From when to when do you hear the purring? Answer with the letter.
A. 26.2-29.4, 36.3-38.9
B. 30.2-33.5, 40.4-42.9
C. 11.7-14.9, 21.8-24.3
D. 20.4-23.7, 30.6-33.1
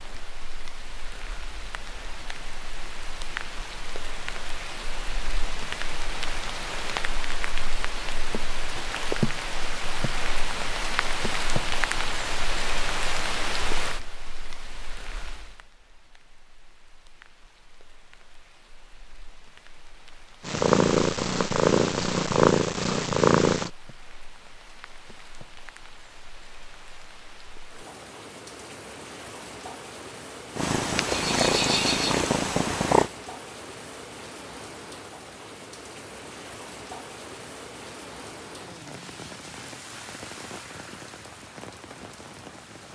D.